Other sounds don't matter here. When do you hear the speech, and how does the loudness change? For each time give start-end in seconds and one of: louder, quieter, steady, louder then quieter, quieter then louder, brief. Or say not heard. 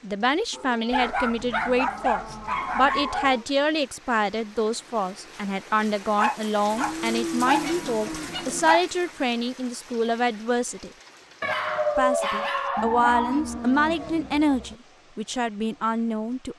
0.0-10.9 steady
11.9-16.5 quieter then louder.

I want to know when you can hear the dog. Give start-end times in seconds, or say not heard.
0.9-3.4, 6.2-8.8, 11.4-13.4.